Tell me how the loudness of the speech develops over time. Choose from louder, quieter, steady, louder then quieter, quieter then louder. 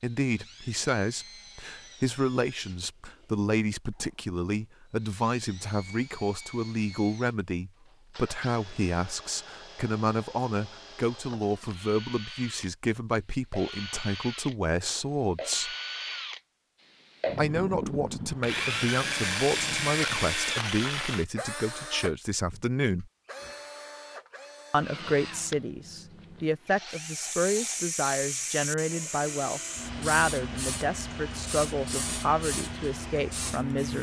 steady.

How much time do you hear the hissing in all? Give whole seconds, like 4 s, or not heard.
7 s.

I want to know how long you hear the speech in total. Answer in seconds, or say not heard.
31 s.